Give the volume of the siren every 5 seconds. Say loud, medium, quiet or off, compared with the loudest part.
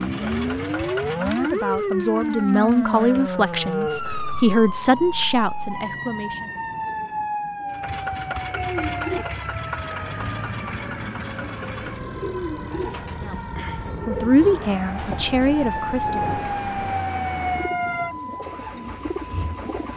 loud, medium, medium, loud.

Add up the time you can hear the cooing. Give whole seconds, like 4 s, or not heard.
11 s.